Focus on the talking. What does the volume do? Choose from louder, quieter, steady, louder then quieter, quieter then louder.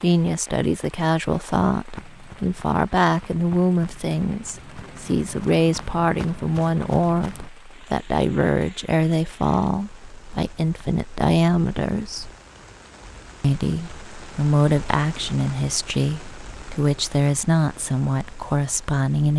steady.